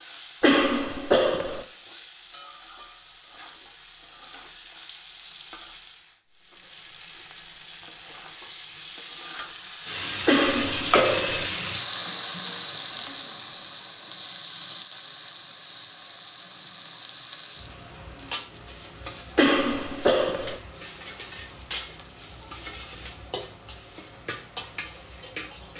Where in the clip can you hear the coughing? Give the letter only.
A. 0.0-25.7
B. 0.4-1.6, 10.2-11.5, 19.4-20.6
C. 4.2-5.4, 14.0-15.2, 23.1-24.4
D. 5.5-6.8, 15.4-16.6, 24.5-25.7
B.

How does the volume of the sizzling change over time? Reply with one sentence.
The loudness of the sizzling goes up, then down.